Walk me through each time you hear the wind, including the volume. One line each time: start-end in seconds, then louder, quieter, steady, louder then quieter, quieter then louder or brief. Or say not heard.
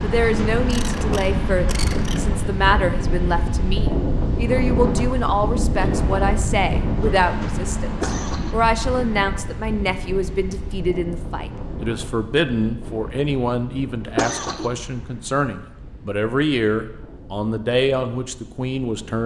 0.0-19.2 quieter.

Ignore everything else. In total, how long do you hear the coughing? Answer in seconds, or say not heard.
3 s.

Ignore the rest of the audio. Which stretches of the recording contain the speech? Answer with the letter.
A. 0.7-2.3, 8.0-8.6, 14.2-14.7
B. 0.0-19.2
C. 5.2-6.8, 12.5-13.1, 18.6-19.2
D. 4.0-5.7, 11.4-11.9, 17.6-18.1
B.